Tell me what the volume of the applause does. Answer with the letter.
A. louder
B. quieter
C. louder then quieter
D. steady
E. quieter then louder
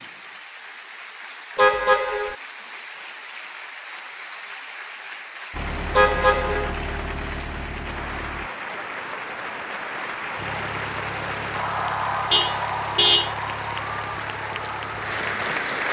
A.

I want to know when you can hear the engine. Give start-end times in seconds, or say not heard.
5.5-8.5, 10.3-15.8.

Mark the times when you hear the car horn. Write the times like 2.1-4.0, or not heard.
1.6-2.4, 6.0-6.8, 12.3-13.3.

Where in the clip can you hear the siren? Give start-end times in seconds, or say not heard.
not heard.